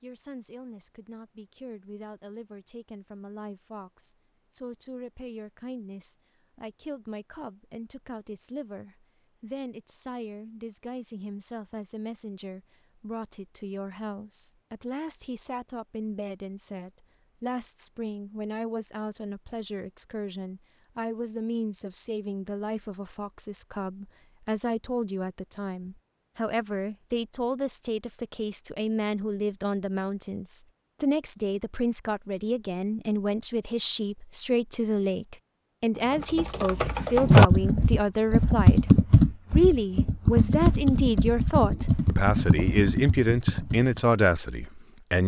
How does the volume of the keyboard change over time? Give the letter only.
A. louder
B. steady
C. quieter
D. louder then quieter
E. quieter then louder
C.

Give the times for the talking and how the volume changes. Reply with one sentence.
The talking can be heard from 0.0 to 45.2 s, getting louder.